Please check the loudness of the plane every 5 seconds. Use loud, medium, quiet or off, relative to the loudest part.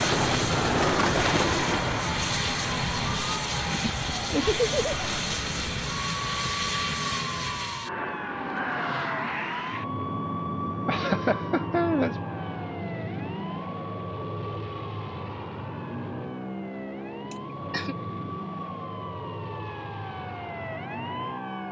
loud, loud, medium, medium, medium.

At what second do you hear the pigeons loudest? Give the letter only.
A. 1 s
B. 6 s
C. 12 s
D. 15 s
A.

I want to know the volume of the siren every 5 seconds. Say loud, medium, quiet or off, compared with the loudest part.
loud, loud, loud, medium, loud.